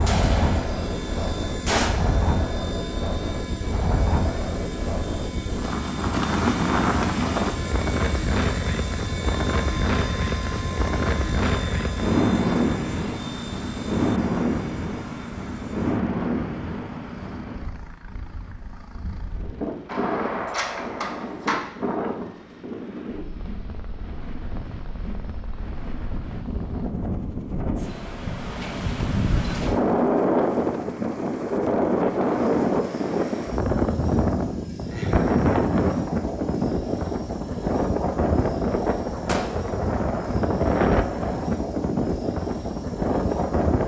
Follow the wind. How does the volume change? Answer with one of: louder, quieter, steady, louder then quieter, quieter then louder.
quieter then louder.